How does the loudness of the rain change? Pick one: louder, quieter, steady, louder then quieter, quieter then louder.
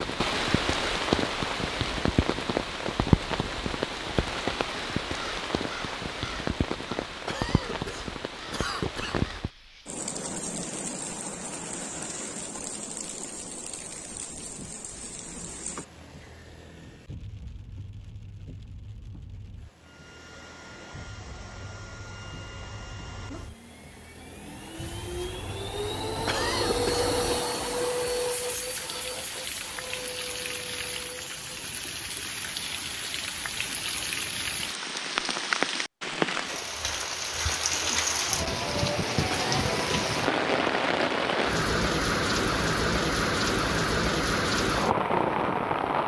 quieter then louder.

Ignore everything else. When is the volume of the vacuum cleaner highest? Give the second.
27 s.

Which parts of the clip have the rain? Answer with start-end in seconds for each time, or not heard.
0.0-46.0.